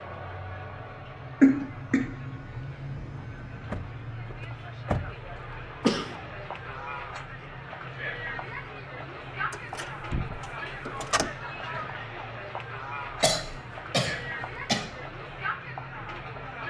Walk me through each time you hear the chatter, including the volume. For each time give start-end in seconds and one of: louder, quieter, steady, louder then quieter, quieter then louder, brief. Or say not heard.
0.0-16.6 louder.